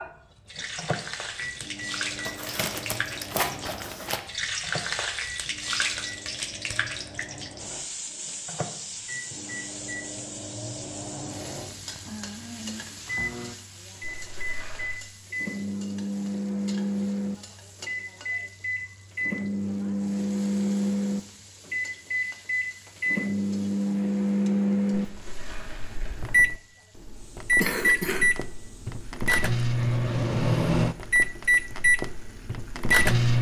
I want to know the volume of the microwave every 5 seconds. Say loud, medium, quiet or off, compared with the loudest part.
quiet, quiet, quiet, medium, loud, loud, loud.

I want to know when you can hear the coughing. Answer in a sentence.
The coughing can be heard from 27.6 to 28.3 s.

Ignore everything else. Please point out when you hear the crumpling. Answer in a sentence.
You can hear the crumpling from 2.2 to 4.2 s, from 14.0 to 15.0 s and from 24.9 to 26.4 s.